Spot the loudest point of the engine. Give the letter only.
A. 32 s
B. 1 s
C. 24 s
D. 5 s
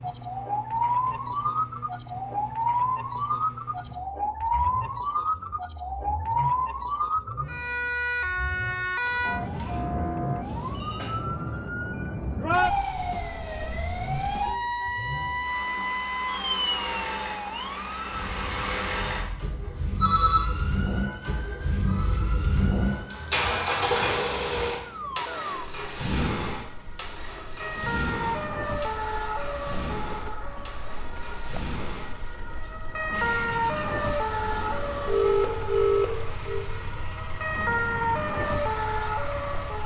C.